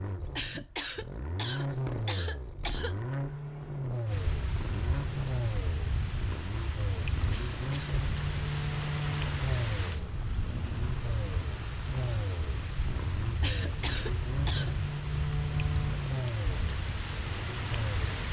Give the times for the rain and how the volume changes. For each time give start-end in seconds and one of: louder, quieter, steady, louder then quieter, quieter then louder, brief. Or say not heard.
4.0-18.2 steady.